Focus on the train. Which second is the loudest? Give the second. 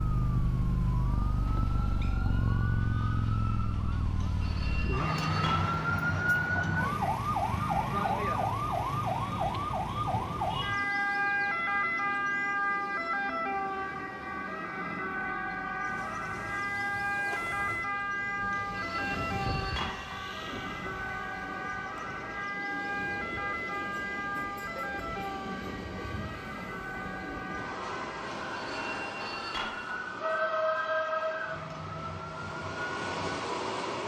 31 s.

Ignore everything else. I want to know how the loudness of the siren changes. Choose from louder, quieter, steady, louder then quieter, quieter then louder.
quieter.